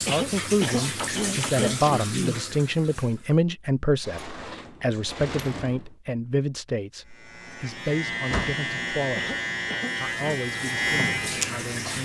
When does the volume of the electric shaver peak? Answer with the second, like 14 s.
11 s.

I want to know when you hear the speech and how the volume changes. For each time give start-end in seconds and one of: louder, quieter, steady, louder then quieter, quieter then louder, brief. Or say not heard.
0.1-9.3 quieter
10.0-12.0 brief.